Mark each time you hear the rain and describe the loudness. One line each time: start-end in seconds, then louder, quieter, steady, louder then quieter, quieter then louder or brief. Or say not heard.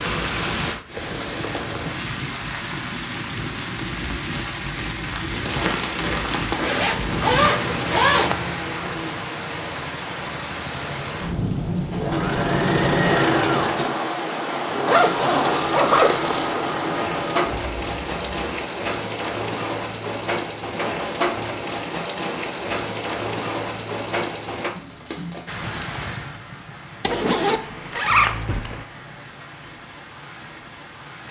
0.0-31.2 quieter.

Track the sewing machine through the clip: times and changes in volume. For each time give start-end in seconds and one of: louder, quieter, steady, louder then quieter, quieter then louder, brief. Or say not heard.
11.7-18.4 quieter.